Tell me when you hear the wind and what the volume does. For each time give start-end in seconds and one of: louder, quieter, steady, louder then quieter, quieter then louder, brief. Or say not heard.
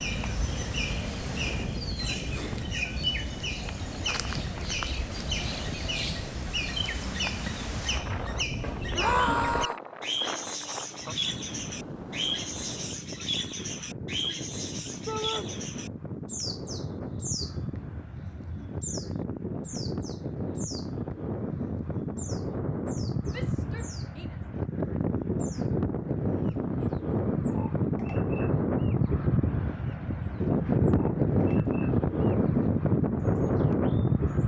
0.0-34.4 louder.